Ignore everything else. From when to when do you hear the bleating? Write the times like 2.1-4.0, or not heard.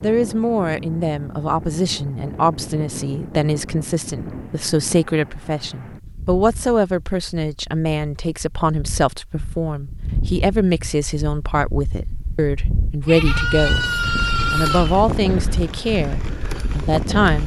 13.0-15.1.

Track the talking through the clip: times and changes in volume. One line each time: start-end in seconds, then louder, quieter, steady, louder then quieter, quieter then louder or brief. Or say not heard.
0.0-13.9 steady
14.5-17.4 brief.